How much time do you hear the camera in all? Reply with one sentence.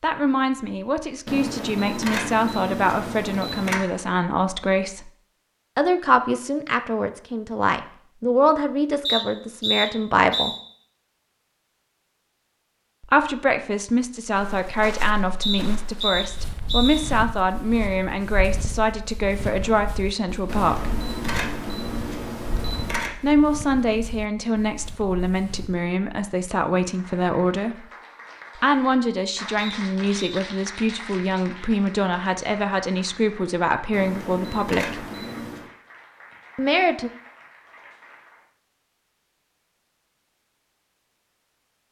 The camera can be heard for 7 seconds in total.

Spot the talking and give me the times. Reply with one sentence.
You can hear the talking from 0.0 to 5.1 s, from 5.8 to 10.5 s, from 13.0 to 21.0 s, from 23.2 to 27.9 s, from 28.6 to 35.0 s and from 36.5 to 37.1 s.